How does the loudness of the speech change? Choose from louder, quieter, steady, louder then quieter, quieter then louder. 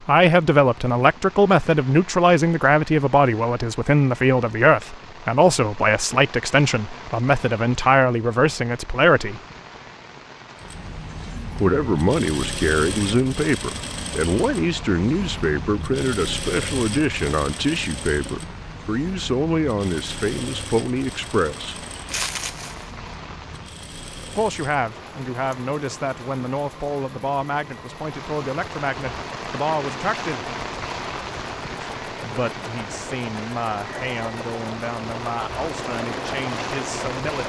quieter.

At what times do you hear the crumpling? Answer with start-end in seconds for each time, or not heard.
22.1-22.9.